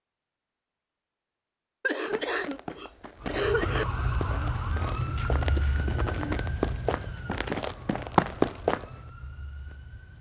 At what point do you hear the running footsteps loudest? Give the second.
8 s.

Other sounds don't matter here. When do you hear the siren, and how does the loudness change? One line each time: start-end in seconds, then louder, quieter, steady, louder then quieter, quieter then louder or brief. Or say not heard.
3.2-10.1 quieter.